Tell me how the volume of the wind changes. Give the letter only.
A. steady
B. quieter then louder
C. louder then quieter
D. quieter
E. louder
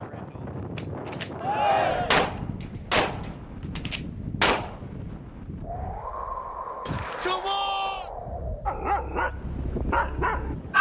A.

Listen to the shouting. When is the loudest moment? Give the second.
2 s.